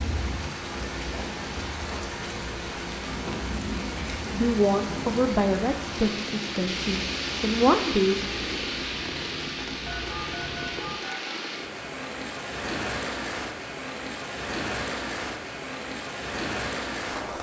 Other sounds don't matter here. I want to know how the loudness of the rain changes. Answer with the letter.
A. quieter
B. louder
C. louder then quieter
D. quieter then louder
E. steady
E.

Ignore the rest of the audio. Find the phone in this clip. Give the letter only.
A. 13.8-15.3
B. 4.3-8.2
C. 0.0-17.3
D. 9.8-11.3
D.